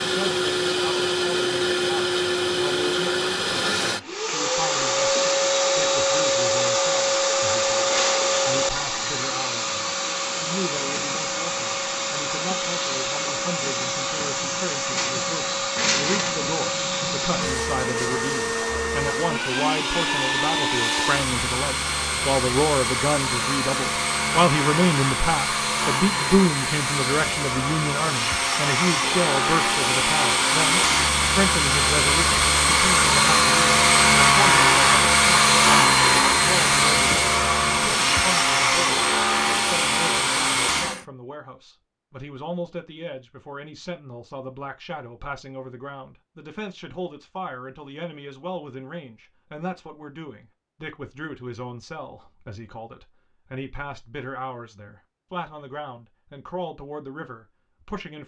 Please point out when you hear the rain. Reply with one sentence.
You can't hear the rain here.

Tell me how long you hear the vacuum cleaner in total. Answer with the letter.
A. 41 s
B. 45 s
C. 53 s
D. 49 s
A.